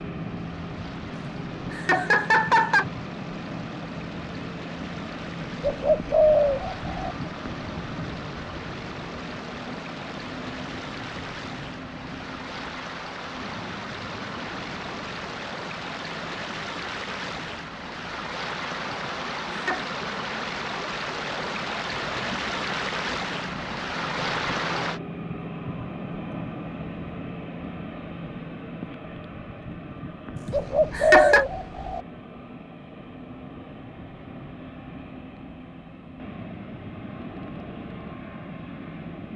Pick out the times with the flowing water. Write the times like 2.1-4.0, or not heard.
0.0-25.0.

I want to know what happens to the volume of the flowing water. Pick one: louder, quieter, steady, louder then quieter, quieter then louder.
louder.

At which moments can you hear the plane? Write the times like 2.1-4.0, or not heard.
0.0-39.3.